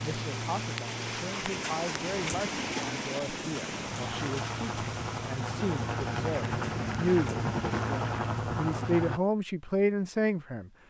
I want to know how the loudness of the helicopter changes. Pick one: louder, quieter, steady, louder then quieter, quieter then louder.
louder.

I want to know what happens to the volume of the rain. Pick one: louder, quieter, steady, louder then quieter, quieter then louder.
quieter.